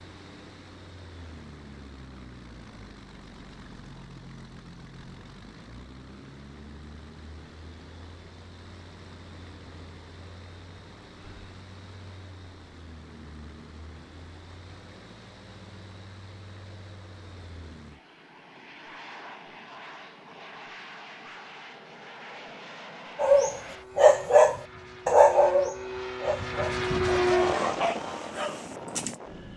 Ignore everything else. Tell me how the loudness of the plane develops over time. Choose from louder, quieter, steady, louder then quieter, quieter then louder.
louder.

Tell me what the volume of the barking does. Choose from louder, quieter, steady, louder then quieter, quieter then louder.
quieter.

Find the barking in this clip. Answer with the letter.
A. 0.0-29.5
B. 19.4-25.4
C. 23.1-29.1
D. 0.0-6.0
C.